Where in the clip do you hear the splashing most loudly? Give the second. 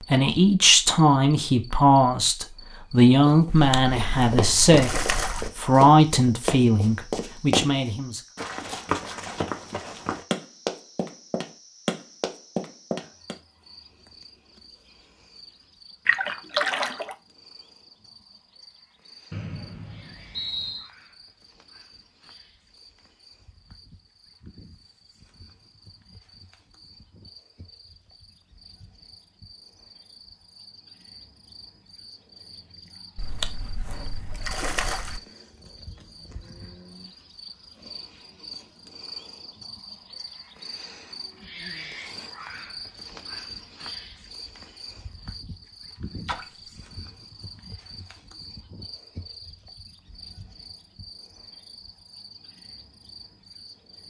17 s.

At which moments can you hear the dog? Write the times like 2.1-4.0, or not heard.
not heard.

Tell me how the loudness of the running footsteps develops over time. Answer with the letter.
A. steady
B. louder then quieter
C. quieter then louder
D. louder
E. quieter
A.